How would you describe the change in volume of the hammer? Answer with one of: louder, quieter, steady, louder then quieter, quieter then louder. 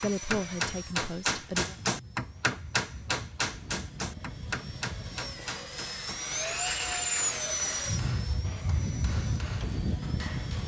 quieter.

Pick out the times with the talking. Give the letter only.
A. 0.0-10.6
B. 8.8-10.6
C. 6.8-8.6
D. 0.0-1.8
D.